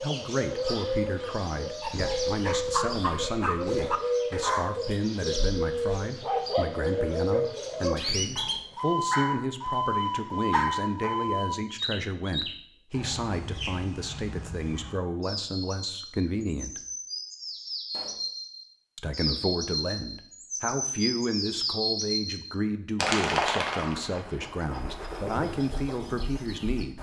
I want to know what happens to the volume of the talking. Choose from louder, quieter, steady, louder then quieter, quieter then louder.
steady.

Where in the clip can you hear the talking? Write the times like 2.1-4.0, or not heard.
0.0-16.8, 18.9-26.9.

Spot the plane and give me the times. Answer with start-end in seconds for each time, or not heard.
not heard.